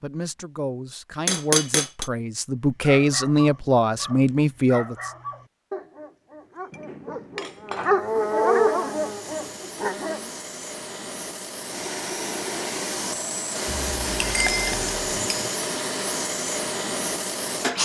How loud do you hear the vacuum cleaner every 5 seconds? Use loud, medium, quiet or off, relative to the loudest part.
off, quiet, loud, loud.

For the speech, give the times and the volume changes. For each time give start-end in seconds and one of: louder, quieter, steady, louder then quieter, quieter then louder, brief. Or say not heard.
0.0-5.1 louder.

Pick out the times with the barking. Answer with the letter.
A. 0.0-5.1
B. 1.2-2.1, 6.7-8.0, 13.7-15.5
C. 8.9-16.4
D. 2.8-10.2
D.